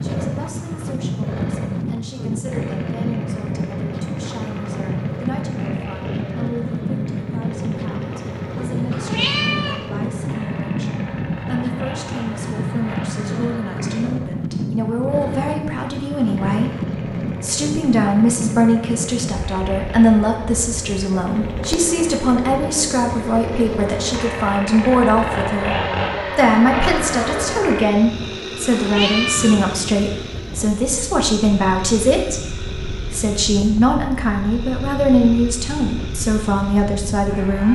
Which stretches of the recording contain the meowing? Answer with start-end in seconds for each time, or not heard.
8.9-9.8, 28.7-29.6.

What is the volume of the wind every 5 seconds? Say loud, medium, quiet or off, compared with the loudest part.
loud, loud, loud, loud, medium, medium, medium, medium.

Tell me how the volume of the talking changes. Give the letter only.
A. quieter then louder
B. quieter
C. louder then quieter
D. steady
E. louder
E.